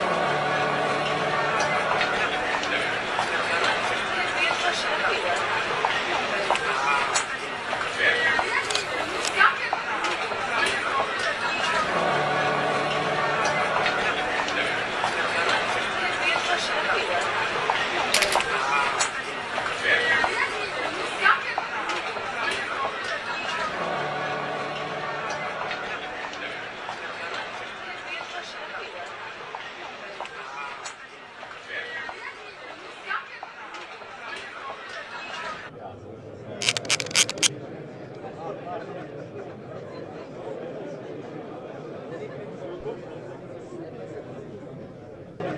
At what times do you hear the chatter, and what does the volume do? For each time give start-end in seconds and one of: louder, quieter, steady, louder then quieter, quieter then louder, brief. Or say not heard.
0.0-45.5 quieter.